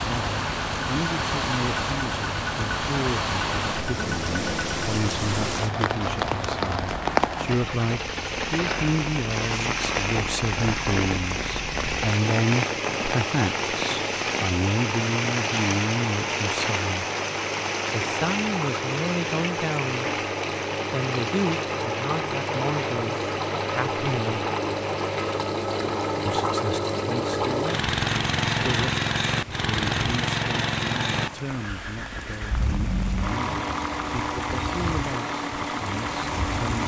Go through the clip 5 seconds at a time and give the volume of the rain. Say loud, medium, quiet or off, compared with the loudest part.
loud, loud, loud, loud, medium, medium, medium, medium.